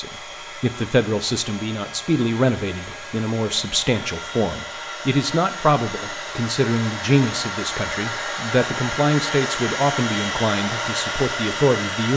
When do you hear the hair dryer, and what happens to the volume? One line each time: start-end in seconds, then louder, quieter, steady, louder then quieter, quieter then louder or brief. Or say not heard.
0.0-12.1 louder.